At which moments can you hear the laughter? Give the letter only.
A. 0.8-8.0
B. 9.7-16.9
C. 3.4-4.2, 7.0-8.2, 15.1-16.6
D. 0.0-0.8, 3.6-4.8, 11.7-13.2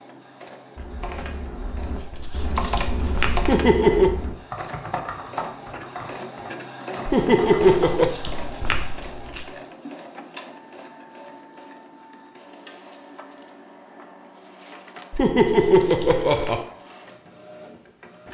C.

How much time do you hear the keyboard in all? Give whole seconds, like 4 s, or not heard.
7 s.